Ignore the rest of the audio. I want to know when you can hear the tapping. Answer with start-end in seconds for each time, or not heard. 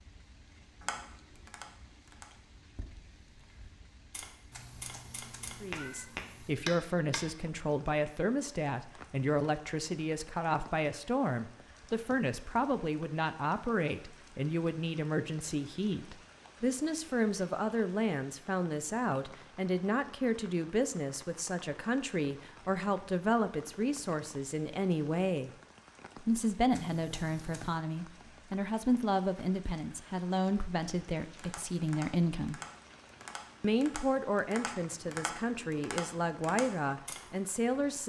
0.8-7.2, 31.2-37.2.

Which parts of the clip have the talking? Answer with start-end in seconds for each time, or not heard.
5.6-25.5, 26.2-32.6, 33.6-38.0.